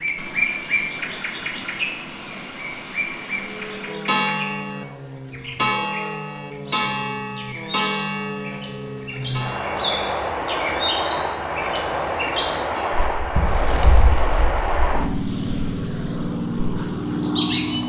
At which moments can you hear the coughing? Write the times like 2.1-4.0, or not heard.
not heard.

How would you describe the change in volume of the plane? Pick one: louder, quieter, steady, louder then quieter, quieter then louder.
louder.